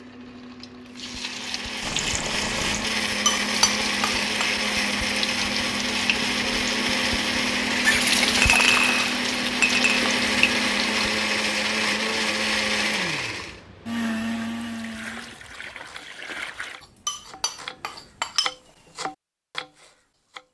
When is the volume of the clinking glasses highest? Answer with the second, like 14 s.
9 s.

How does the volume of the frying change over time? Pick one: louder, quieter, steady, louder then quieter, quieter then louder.
louder.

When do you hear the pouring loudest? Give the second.
8 s.